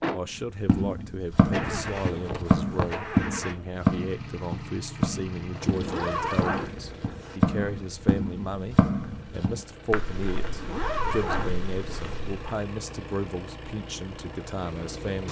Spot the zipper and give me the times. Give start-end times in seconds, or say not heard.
1.6-3.0, 5.5-7.4, 10.3-12.2.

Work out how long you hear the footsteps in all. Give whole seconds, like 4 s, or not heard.
12 s.